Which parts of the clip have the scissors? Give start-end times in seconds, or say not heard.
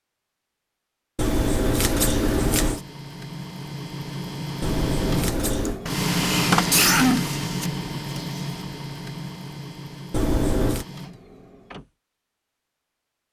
1.1-2.8, 4.6-5.8, 10.1-10.8.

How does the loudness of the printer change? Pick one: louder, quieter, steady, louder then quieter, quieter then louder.
louder then quieter.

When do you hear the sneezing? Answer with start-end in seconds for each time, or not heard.
5.7-7.2.